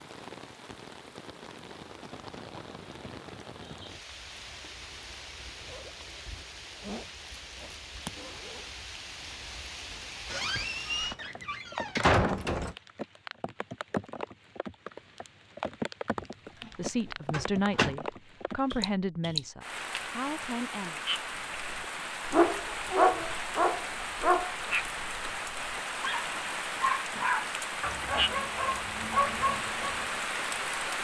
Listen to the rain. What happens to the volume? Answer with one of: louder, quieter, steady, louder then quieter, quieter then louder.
louder.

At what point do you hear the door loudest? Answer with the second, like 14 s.
12 s.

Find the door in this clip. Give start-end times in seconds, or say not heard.
10.3-12.8, 16.1-16.7, 17.3-17.9.